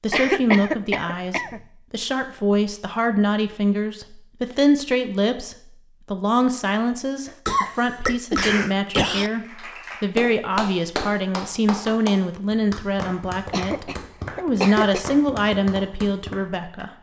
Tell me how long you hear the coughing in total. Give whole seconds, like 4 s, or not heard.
5 s.